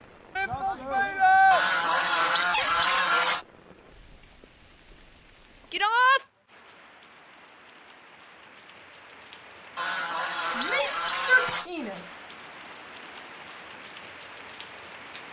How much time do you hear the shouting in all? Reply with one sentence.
You can hear the shouting for 3 seconds altogether.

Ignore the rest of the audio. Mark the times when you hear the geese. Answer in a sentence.
The geese can be heard from 1.5 to 3.5 s and from 9.8 to 11.7 s.